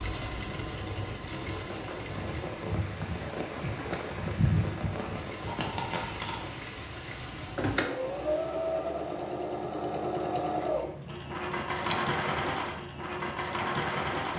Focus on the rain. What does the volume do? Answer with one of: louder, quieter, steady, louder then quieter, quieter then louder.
louder then quieter.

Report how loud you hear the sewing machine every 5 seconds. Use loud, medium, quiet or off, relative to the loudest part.
medium, loud, loud.